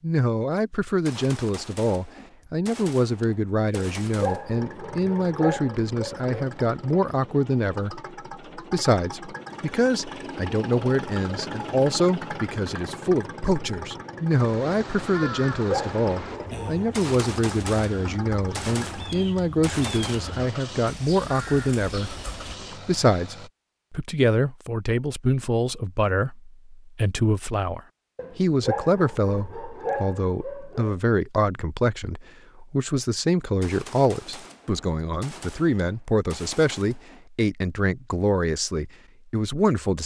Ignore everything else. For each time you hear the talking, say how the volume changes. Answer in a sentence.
The talking can be heard from 0.0 to 40.0 s, at a steady volume.